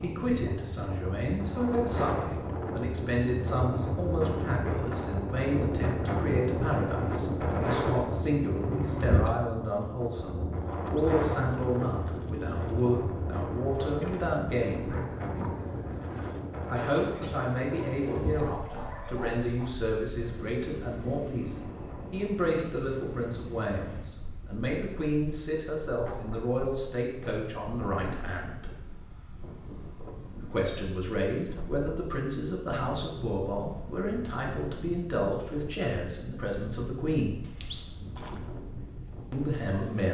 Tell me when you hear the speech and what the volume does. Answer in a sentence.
You can hear the speech from 0.0 to 14.9 s, at a steady volume; from 16.7 to 28.6 s, at a steady volume; from 30.4 to 37.4 s, at a steady volume; and briefly from 39.3 to 40.0 s.